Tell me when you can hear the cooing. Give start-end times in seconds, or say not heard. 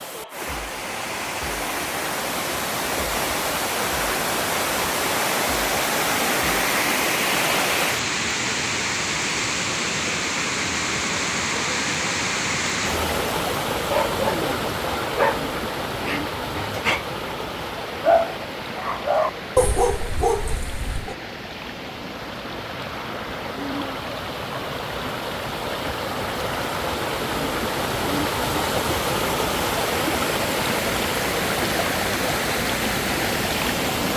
not heard.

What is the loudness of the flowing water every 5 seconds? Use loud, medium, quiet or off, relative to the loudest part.
loud, loud, loud, medium, medium, loud, loud.